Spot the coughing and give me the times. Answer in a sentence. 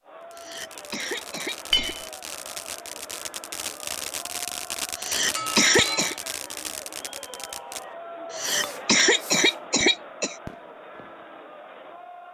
You can hear the coughing from 0.3 to 1.9 s, from 5.0 to 6.2 s and from 8.3 to 10.3 s.